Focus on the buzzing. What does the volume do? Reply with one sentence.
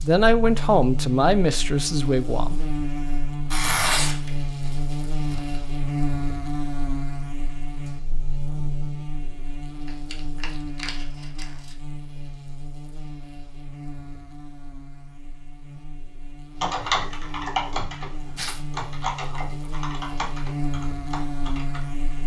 The volume of the buzzing goes down, then up.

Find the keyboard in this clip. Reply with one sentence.
You can hear the keyboard from 16.6 to 22.2 s.